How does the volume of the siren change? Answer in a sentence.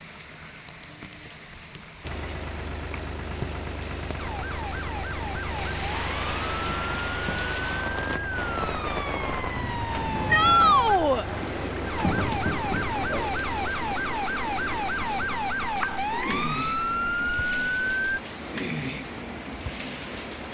The loudness of the siren goes up.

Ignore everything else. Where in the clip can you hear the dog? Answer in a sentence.
The dog can't be heard in this clip.